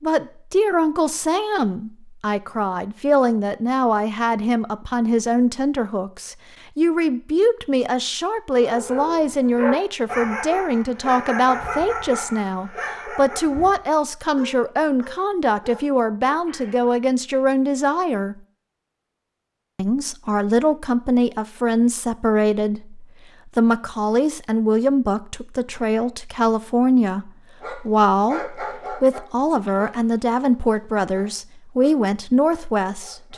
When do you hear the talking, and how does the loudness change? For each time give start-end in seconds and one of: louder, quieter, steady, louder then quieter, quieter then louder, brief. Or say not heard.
0.0-18.4 steady
19.8-33.3 steady.